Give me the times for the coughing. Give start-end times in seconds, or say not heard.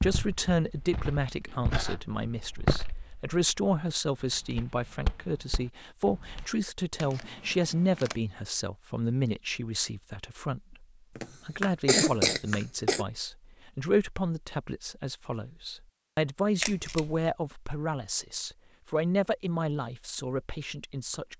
11.2-13.1.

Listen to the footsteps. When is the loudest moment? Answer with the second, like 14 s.
3 s.